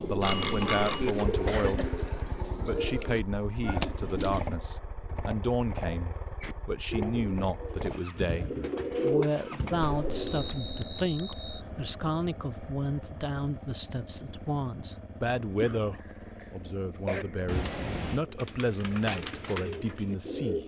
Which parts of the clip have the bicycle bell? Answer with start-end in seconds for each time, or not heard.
0.2-1.1, 10.1-11.6, 17.4-18.2.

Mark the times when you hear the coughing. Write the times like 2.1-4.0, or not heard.
1.2-2.0, 15.4-17.2.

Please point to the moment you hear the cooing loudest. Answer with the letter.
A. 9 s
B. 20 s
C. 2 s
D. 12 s
A.